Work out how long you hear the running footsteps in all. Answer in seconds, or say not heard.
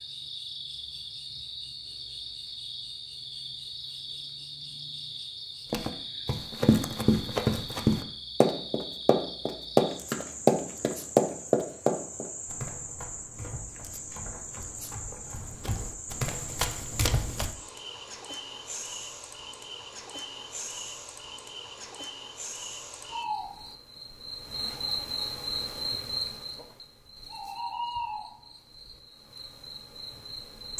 12 s.